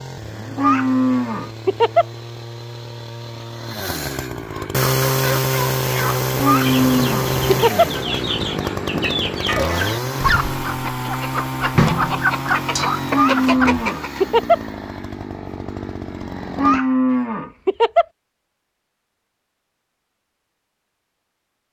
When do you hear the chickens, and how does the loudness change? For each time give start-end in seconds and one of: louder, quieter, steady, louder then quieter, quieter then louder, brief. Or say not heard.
4.5-14.2 louder.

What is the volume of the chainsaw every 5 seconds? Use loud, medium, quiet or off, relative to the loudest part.
medium, loud, medium, medium, off.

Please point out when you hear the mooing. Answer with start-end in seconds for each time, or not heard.
0.2-2.0, 6.2-7.8, 12.9-14.6, 16.2-18.1.